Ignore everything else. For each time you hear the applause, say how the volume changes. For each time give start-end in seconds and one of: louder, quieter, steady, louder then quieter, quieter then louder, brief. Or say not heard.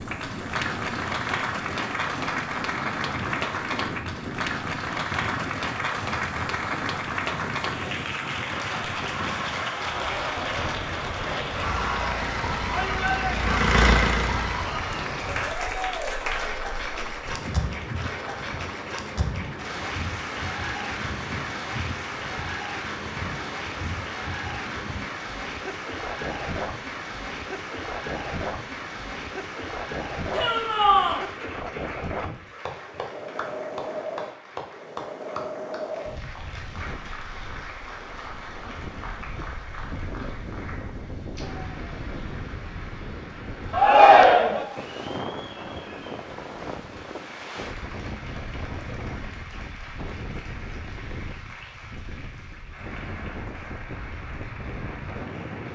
0.0-55.7 quieter.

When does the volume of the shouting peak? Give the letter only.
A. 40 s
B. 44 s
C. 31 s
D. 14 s
B.